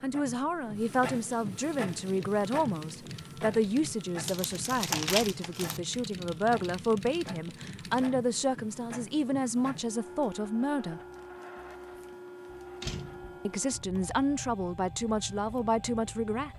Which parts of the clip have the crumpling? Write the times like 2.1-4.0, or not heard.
4.2-5.8.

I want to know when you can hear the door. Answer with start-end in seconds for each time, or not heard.
12.8-13.4.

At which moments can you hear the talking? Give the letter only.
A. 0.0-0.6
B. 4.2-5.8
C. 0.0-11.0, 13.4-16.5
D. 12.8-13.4
C.